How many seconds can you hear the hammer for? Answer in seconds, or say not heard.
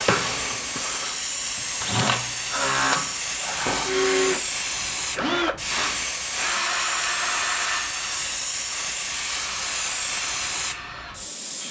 not heard.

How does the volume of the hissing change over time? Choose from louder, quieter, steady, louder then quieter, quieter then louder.
steady.